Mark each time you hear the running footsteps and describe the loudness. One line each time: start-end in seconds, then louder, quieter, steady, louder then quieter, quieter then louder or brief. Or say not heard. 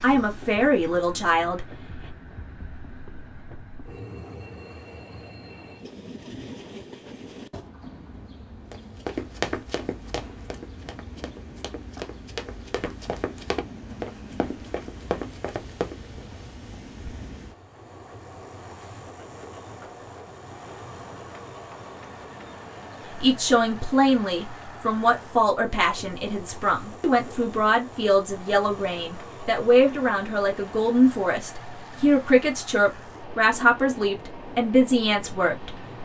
8.7-16.2 quieter then louder.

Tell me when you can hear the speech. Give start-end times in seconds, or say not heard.
0.0-1.6, 23.2-36.0.